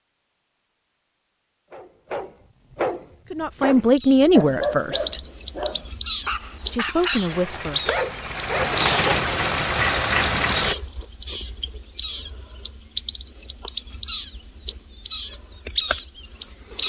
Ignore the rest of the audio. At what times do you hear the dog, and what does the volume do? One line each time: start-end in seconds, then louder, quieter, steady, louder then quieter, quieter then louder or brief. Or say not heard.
1.7-8.8 steady.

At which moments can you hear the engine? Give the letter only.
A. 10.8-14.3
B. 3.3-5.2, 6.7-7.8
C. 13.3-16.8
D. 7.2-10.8
D.